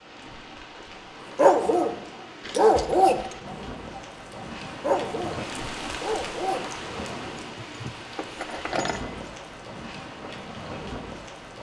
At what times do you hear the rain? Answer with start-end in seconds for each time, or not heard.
0.0-11.5.